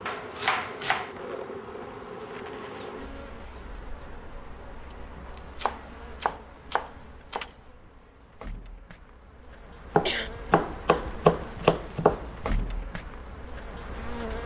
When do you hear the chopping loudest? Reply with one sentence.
The loudest moment of the chopping is at 11 seconds.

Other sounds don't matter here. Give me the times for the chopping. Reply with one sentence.
You can hear the chopping from 0.1 to 1.1 s, from 5.6 to 7.5 s and from 9.9 to 12.5 s.